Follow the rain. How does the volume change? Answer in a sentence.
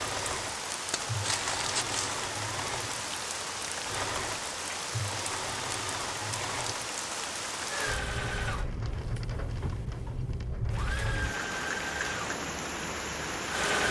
The loudness of the rain stays about the same.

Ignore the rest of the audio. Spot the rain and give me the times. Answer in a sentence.
The rain can be heard from 0.0 to 13.8 s.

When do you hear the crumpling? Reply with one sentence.
You can hear the crumpling from 0.9 to 2.1 s.